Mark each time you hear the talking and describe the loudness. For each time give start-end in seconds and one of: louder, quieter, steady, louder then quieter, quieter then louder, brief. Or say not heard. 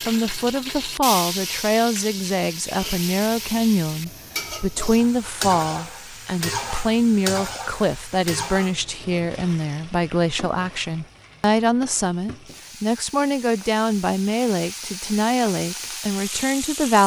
0.1-17.0 steady.